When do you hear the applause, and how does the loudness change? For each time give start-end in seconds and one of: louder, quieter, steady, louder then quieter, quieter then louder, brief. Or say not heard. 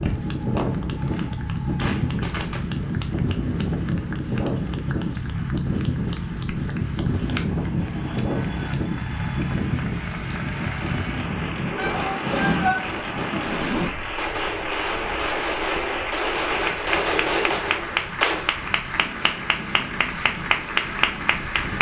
0.0-21.7 louder.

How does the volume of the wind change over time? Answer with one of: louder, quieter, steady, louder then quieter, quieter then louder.
quieter.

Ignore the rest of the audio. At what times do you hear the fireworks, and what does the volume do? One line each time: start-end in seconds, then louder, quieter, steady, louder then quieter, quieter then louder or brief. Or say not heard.
0.0-2.7 brief
12.2-18.5 steady.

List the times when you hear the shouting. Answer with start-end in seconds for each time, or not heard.
11.8-12.8.